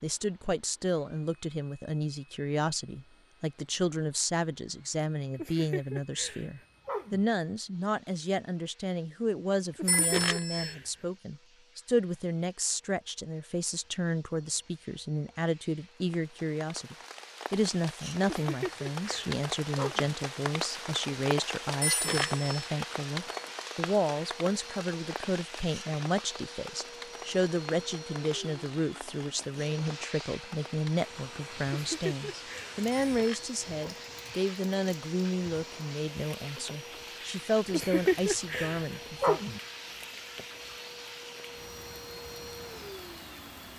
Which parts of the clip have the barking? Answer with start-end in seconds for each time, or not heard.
5.3-7.2, 9.7-10.9, 18.2-20.1, 31.7-32.8, 37.6-39.6.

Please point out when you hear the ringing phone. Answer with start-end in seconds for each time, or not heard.
9.8-10.8, 21.8-22.7, 33.0-33.5.